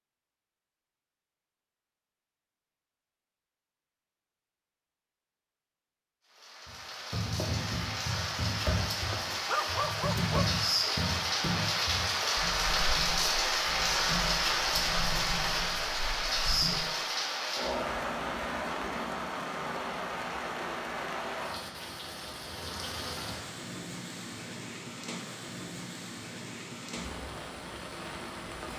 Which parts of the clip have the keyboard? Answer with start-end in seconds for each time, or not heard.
6.7-16.8.